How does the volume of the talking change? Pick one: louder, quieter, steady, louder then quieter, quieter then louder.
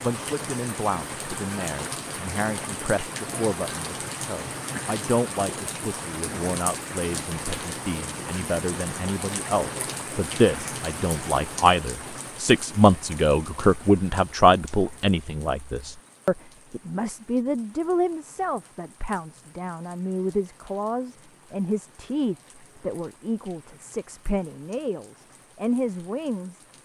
louder then quieter.